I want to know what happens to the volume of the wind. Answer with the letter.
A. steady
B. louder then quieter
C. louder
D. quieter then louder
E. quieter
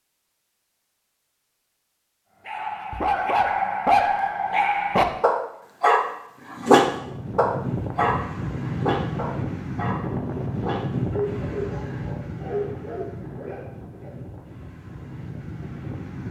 E.